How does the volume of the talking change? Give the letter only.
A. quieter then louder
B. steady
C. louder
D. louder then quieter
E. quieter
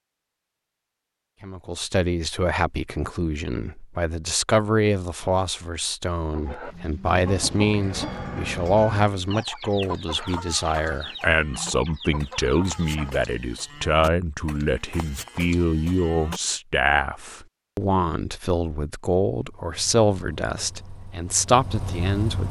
B.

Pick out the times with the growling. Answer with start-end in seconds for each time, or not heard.
not heard.